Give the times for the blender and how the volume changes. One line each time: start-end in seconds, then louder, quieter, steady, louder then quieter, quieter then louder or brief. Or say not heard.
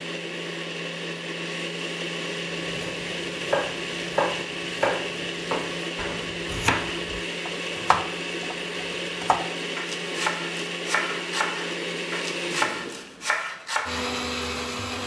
0.0-15.0 steady.